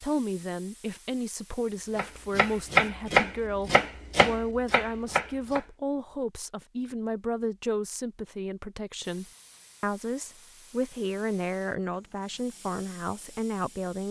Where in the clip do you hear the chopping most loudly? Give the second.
3 s.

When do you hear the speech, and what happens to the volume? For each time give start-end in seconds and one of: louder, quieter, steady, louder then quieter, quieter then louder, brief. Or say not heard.
0.0-14.0 steady.